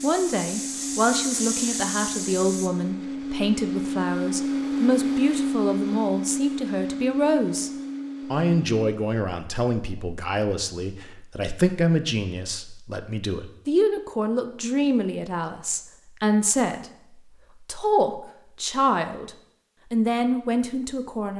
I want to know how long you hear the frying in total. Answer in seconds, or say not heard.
3 s.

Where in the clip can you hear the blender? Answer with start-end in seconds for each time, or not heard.
0.0-8.8.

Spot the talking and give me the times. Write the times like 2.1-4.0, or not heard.
0.0-7.7, 8.3-16.9, 17.6-19.3, 19.9-21.3.